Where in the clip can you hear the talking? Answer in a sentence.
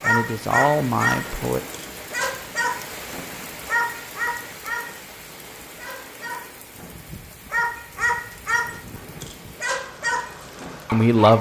You can hear the talking from 0.1 to 1.6 s and from 10.9 to 11.3 s.